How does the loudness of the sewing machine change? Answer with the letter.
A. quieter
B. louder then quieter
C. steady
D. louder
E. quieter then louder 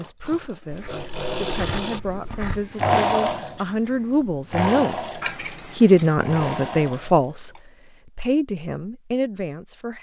B.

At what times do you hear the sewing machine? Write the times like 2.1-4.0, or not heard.
0.0-7.6.